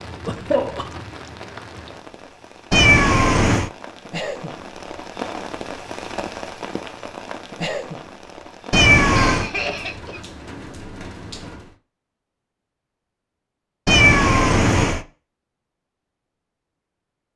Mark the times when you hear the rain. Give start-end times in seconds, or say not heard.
0.0-11.8.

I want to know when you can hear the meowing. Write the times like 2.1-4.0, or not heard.
2.7-3.7, 8.7-9.5, 13.8-15.1.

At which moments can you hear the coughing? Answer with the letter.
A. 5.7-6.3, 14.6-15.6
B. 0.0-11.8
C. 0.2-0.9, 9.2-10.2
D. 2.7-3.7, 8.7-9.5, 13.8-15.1
C.